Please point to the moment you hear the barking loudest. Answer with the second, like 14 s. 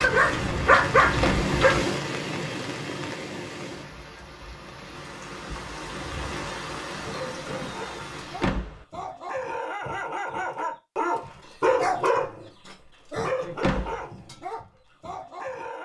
1 s.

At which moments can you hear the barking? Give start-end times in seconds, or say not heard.
0.0-1.9, 7.0-15.7.